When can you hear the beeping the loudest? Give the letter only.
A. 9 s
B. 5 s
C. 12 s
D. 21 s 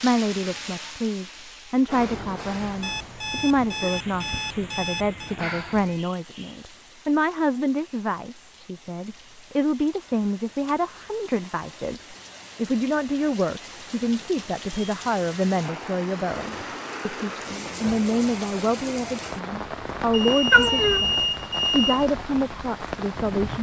D.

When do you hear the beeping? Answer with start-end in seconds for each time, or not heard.
2.8-5.3, 20.1-22.1.